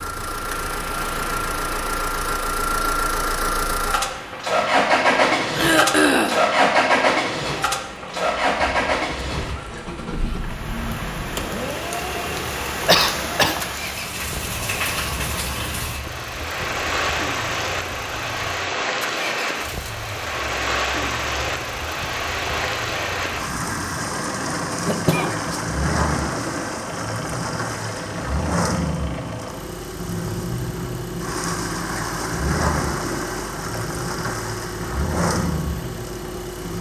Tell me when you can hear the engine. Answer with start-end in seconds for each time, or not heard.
0.0-36.7.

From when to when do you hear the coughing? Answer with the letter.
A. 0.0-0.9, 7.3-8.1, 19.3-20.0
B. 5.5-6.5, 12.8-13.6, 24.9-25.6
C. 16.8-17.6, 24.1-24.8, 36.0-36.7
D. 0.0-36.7
B.